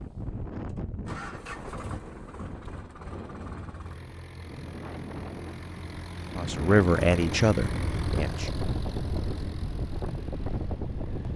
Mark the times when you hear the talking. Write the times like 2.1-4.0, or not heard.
6.3-8.5.